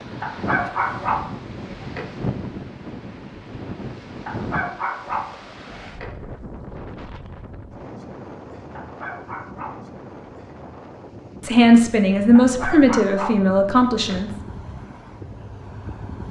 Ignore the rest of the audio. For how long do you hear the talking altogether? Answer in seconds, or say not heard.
3 s.